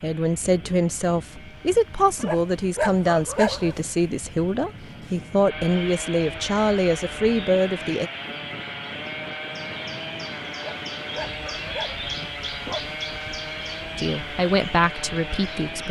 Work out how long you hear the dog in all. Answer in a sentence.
The dog can be heard for 4 seconds in total.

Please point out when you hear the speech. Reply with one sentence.
You can hear the speech from 0.0 to 8.1 s and from 13.9 to 15.8 s.